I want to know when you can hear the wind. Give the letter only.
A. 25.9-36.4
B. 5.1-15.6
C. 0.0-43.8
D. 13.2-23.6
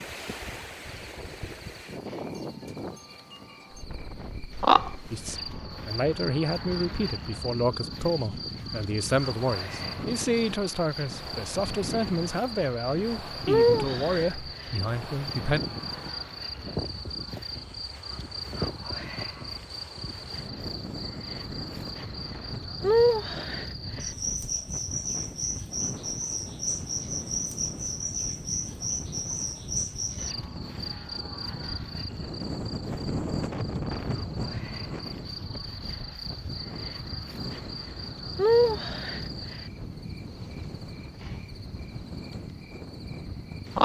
C.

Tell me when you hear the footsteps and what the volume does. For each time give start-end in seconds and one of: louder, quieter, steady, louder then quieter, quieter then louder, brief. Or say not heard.
not heard.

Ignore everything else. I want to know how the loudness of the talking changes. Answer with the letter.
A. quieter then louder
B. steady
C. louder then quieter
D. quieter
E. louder
B.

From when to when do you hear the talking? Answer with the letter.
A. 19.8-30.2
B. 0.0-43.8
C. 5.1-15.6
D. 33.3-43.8
C.